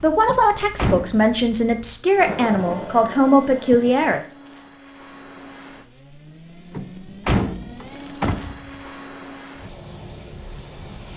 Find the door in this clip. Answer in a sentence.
You can hear the door from 0.2 to 1.2 s and from 6.8 to 8.8 s.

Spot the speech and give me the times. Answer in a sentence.
The speech can be heard from 0.0 to 4.2 s.